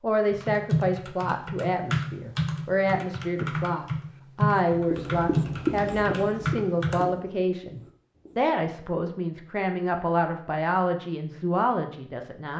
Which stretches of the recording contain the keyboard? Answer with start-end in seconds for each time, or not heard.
0.3-7.1.